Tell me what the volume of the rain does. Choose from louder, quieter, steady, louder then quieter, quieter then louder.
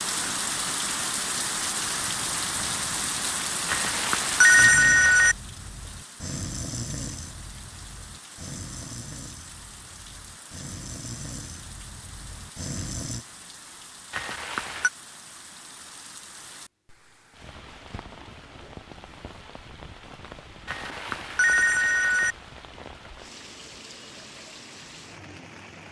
quieter.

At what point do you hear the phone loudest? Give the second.
5 s.